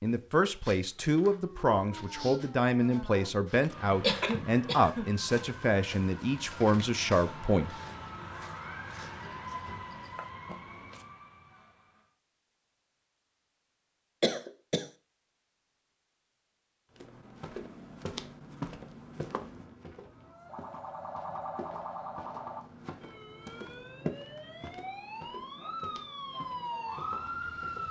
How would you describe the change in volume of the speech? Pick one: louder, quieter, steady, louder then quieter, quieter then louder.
steady.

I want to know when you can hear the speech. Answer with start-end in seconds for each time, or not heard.
0.0-7.7.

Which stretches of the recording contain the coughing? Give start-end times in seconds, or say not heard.
4.0-5.1, 14.2-14.8.